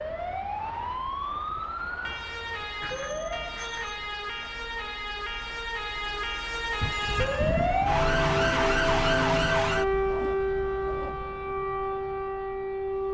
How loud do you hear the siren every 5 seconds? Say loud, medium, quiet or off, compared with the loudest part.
medium, loud, loud.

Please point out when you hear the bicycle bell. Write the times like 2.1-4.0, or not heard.
2.8-4.0, 6.8-8.0.